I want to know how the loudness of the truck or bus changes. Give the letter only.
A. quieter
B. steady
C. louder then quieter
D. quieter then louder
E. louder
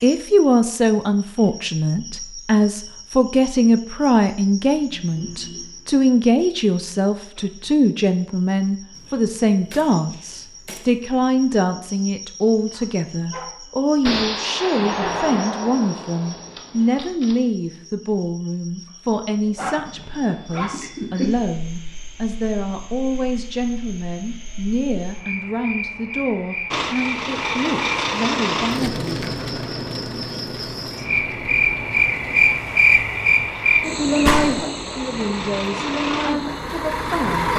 D.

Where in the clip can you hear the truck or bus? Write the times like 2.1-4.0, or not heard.
26.7-37.5.